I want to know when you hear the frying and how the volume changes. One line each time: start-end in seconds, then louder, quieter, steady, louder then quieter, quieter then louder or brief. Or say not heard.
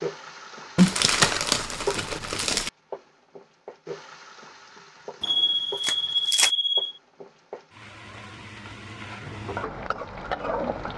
0.0-10.9 quieter then louder.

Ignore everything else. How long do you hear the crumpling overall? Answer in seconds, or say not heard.
3 s.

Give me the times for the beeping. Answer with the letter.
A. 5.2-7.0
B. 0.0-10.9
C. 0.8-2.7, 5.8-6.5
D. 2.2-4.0
A.